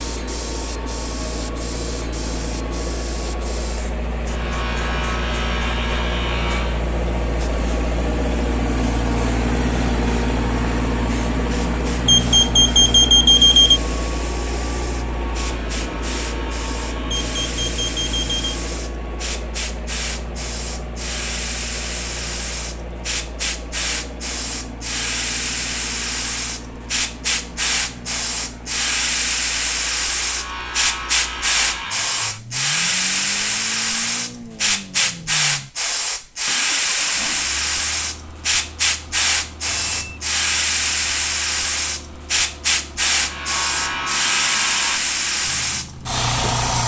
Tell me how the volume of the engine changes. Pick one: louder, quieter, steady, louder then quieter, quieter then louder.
quieter.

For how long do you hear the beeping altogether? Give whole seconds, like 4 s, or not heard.
4 s.